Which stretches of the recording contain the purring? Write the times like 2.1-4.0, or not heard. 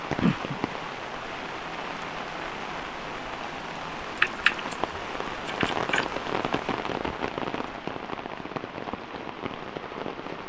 not heard.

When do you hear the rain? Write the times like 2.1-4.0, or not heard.
0.0-10.4.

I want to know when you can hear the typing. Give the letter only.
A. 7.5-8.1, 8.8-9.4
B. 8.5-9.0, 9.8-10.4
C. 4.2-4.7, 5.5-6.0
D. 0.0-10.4
C.